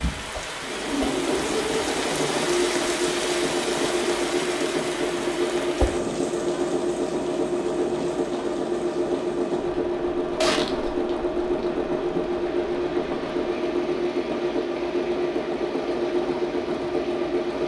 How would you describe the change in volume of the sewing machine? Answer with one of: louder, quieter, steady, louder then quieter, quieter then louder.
steady.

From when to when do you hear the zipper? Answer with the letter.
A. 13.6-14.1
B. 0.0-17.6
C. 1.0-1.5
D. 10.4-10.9
D.